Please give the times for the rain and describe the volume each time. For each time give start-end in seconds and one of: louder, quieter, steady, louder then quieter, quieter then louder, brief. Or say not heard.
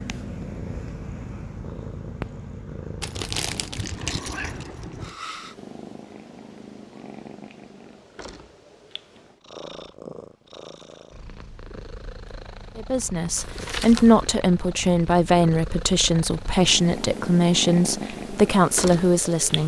not heard.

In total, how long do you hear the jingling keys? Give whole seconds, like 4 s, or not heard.
2 s.